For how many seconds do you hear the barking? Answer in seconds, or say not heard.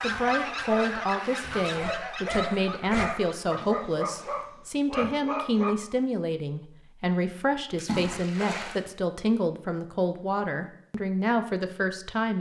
6 s.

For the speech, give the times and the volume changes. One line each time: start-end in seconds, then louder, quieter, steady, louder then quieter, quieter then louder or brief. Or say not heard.
0.0-12.3 steady.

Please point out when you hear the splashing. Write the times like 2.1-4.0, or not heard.
3.5-4.5, 7.8-8.8.